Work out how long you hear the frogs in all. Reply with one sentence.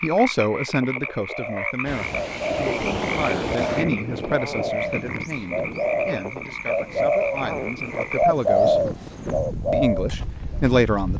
The frogs can be heard for 8 seconds in total.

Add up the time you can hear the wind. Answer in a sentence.
The wind can be heard for 9 seconds in total.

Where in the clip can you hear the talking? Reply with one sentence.
You can hear the talking from 0.0 to 8.8 s and from 9.7 to 11.1 s.